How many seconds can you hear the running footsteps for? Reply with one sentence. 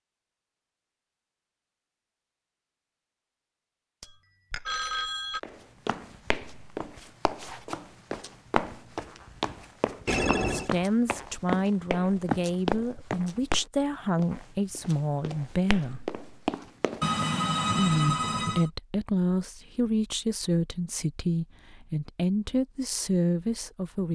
You can hear the running footsteps for 12 seconds altogether.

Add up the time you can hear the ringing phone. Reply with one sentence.
The ringing phone can be heard for 4 seconds in total.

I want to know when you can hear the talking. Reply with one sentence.
The talking can be heard from 10.4 to 16.1 s and from 17.8 to 24.1 s.